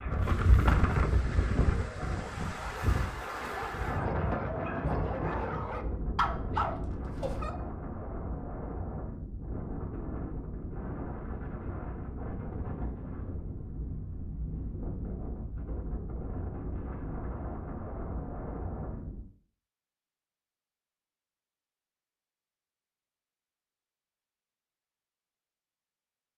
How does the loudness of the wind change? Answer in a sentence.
The loudness of the wind goes down.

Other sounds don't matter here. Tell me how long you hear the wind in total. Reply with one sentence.
You can hear the wind for 19 seconds altogether.